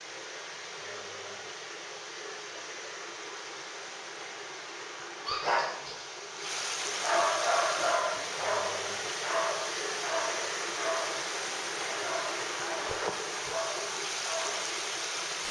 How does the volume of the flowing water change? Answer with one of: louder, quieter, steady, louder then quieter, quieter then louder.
louder.